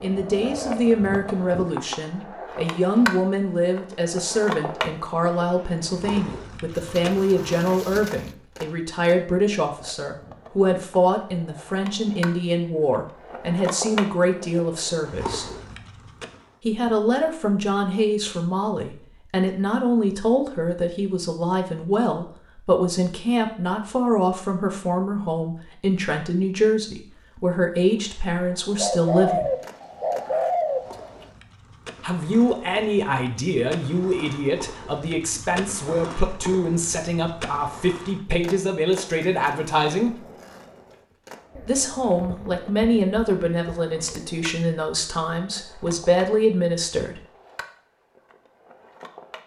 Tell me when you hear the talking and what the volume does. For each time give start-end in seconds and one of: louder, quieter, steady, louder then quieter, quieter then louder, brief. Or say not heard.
0.0-15.5 steady
16.6-29.6 steady
32.0-40.2 steady
41.6-47.2 quieter then louder.